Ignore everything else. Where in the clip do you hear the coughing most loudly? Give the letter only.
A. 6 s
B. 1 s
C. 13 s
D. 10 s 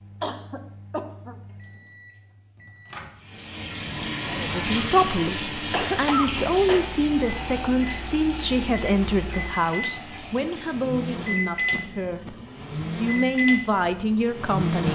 A.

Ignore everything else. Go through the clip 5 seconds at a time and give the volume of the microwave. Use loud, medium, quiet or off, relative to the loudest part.
quiet, medium, loud.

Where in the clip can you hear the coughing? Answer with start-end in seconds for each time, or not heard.
0.2-1.4, 5.7-6.8, 11.7-12.5.